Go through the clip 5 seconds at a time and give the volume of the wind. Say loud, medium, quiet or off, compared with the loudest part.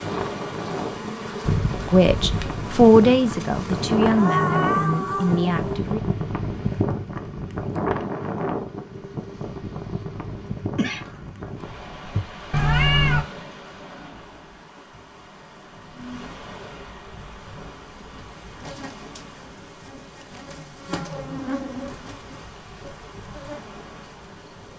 loud, loud, medium, quiet, quiet.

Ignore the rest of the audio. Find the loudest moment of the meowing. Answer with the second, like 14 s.
13 s.